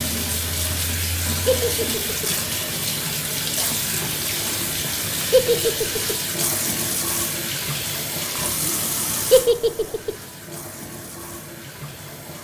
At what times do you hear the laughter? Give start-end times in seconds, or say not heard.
1.4-2.3, 5.3-6.2, 9.3-10.2.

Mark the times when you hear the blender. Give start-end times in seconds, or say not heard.
not heard.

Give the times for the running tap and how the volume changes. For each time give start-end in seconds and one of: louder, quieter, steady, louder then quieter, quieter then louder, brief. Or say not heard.
0.0-12.4 quieter.